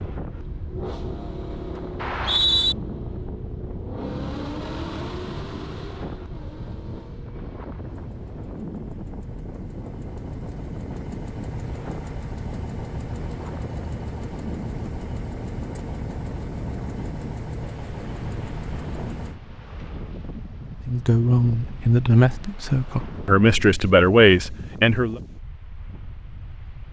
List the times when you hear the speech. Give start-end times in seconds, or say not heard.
20.9-25.2.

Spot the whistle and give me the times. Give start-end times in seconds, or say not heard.
2.0-2.8.